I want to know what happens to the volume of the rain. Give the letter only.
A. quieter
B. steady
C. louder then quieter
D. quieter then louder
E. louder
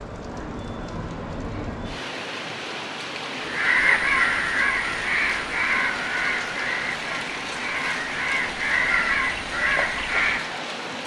B.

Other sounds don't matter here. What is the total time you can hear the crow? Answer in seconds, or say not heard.
7 s.